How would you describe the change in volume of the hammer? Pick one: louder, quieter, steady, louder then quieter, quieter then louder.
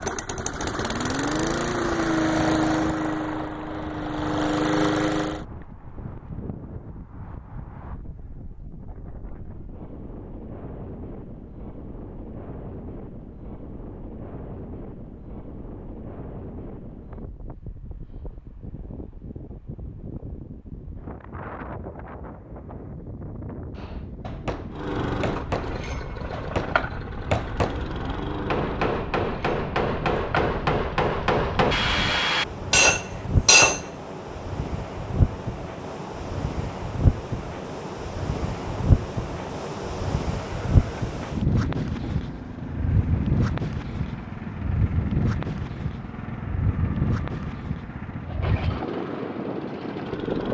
louder.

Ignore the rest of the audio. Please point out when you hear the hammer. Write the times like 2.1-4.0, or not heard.
23.8-33.8.